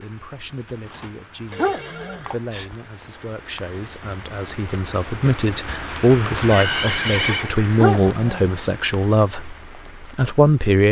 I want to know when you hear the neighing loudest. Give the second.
7 s.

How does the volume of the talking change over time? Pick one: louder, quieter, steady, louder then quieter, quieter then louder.
louder.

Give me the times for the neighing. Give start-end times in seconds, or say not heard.
1.5-2.7, 6.3-7.5.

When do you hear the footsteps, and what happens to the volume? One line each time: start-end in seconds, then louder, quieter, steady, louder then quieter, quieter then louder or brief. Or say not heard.
not heard.